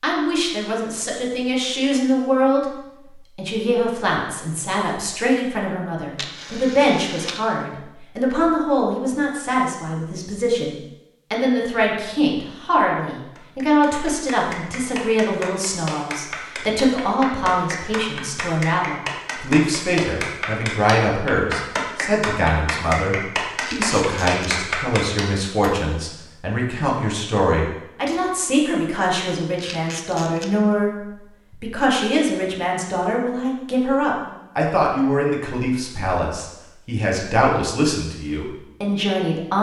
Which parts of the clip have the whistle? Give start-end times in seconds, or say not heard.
not heard.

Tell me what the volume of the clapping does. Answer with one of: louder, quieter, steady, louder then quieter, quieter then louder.
louder.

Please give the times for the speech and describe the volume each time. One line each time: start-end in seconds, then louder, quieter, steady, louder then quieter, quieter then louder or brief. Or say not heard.
0.0-2.6 brief
3.4-39.5 steady.